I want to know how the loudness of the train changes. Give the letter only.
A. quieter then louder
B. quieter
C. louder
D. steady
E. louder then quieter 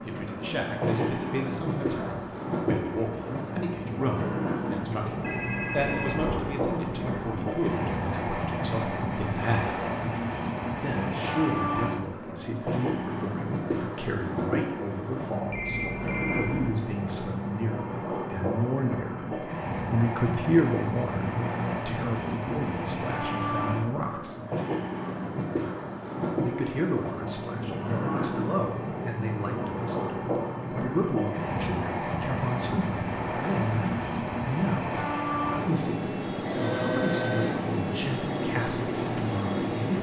D.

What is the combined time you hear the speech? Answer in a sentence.
You can hear the speech for 37 seconds altogether.